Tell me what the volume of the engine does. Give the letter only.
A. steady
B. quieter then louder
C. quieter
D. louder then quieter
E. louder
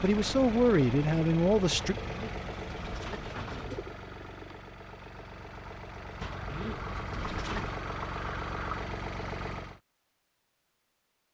B.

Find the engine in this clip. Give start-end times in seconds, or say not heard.
0.0-9.8.